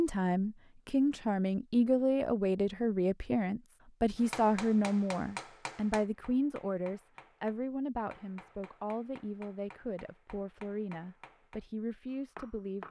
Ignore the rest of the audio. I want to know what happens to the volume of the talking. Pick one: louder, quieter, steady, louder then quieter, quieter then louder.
quieter.